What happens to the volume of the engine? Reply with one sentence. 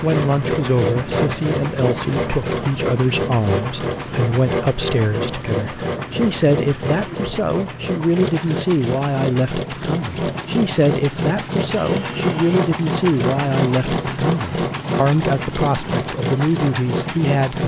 The loudness of the engine stays about the same.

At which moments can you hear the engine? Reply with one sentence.
The engine can be heard from 0.0 to 17.6 s.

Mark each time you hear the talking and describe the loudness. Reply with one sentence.
You can hear the talking from 0.0 to 17.6 s, at a steady volume.